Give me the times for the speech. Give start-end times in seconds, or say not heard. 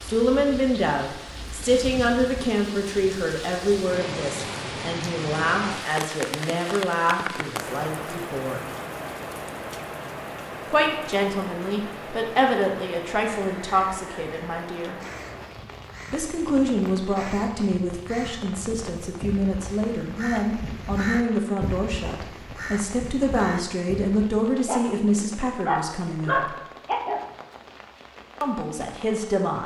0.0-8.6, 10.7-14.9, 16.1-26.6, 28.4-29.6.